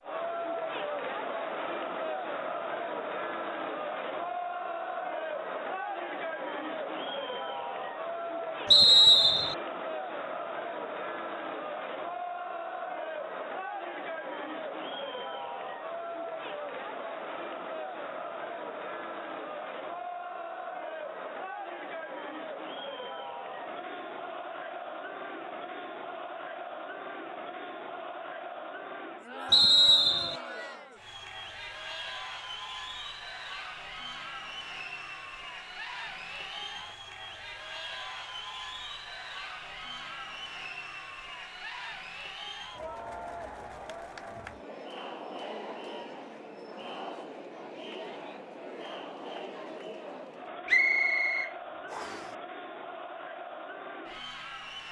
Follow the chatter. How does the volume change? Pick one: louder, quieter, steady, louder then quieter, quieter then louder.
quieter.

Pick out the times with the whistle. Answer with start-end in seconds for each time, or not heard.
8.7-9.6, 29.5-30.4, 50.6-52.2.